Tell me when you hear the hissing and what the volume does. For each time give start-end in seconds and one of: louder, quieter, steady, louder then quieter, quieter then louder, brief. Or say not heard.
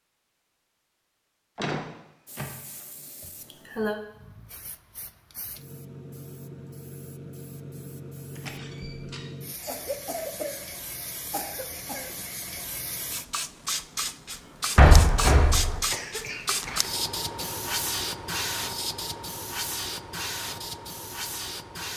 2.2-21.9 louder.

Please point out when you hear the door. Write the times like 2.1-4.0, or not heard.
1.6-2.9, 8.3-9.2, 14.8-15.8.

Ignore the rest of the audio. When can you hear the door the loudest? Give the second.
15 s.